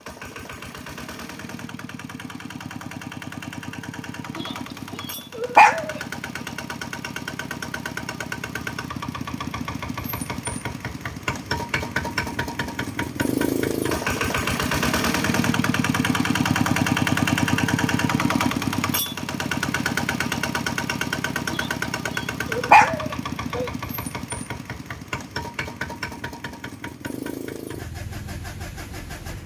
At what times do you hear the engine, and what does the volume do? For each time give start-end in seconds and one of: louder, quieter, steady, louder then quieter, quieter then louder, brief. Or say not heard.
0.0-29.4 louder then quieter.